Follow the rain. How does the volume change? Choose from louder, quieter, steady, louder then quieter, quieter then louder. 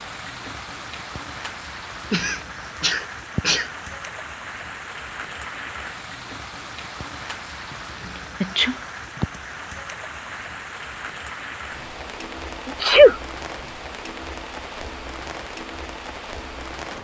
steady.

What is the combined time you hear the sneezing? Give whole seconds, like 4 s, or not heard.
4 s.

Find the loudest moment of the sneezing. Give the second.
13 s.